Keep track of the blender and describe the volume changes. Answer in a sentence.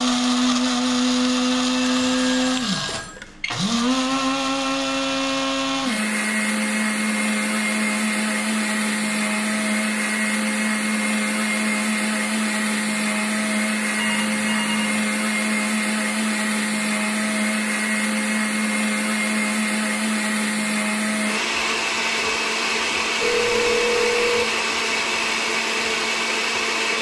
The volume of the blender stays about the same.